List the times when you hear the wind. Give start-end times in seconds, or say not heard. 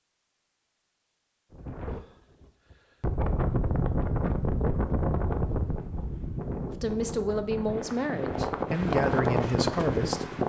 1.5-10.4.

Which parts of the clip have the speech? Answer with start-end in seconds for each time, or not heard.
6.7-10.3.